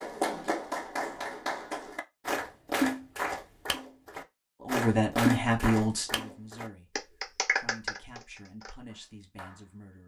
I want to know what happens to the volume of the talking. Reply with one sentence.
The loudness of the talking goes down.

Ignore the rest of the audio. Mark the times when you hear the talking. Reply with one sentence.
You can hear the talking from 4.6 to 10.0 s.